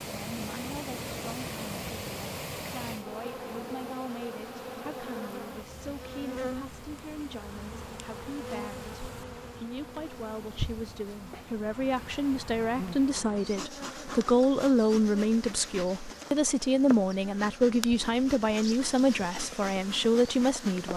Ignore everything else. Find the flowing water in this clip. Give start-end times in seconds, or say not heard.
0.0-13.2.